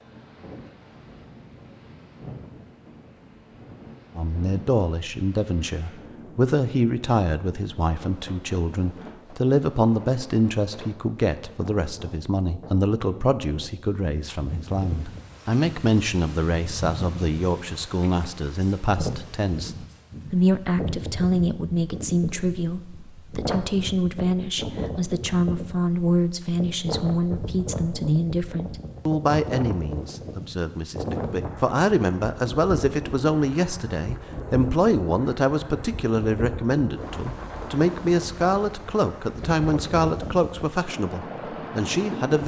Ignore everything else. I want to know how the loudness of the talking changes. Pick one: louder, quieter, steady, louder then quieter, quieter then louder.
steady.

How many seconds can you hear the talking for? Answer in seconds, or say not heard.
38 s.